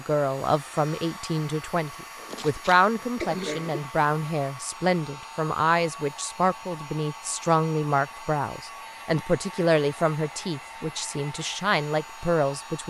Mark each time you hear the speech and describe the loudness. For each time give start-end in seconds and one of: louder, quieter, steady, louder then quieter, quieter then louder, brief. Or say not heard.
0.0-12.8 steady.